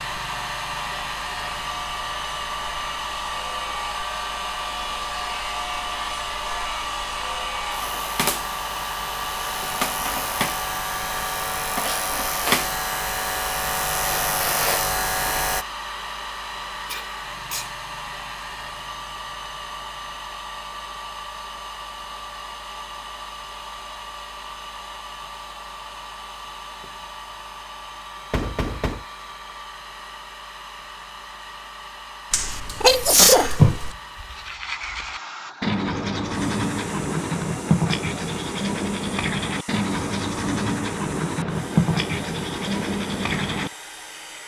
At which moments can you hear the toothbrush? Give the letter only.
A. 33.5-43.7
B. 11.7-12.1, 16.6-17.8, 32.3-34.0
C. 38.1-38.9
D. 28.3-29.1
A.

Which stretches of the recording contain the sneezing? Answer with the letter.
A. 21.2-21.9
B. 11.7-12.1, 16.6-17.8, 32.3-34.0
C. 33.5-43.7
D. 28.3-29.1
B.